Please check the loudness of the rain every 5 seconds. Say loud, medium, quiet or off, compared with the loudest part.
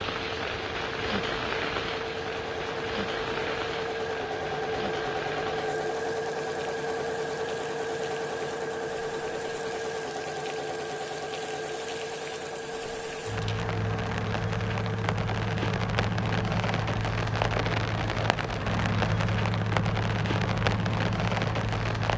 medium, quiet, medium, loud, loud.